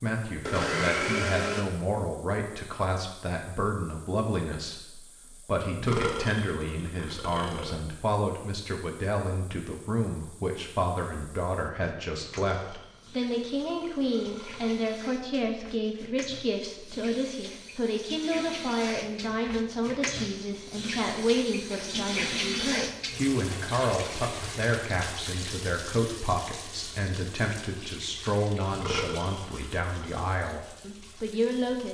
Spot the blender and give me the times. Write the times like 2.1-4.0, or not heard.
0.5-1.6.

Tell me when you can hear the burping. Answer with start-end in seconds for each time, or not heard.
5.8-7.8, 12.2-15.0, 28.7-30.2.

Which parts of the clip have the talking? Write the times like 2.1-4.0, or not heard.
0.0-31.8.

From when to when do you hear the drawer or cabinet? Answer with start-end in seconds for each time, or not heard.
not heard.